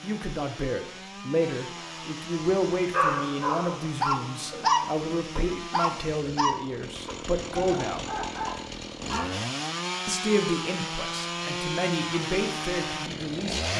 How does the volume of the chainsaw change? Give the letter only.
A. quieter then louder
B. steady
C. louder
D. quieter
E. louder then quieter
C.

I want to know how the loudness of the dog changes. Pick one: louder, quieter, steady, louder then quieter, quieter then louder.
quieter.